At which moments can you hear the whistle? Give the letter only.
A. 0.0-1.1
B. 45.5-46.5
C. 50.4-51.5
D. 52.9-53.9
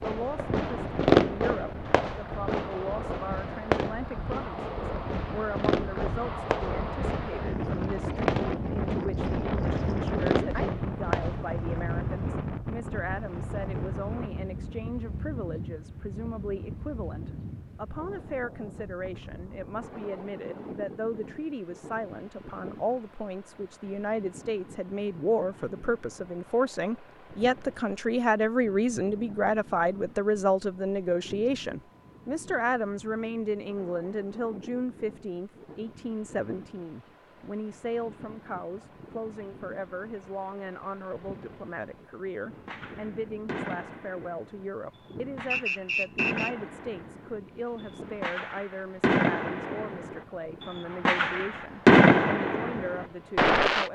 B.